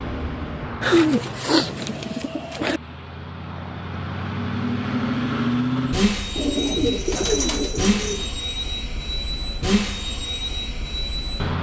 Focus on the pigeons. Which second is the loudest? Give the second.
1 s.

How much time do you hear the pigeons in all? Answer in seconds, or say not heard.
4 s.